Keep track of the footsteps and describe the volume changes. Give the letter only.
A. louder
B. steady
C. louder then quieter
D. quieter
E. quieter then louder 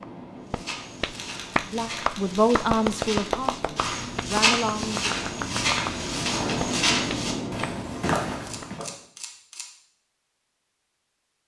A.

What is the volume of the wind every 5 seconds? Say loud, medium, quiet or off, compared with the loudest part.
medium, loud, off.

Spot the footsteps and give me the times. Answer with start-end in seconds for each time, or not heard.
0.5-8.8.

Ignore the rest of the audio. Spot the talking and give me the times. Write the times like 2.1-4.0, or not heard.
1.6-5.1.